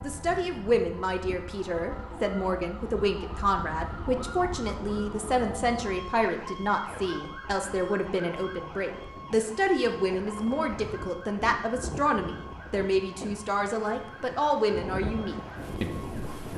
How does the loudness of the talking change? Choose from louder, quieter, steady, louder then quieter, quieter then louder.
steady.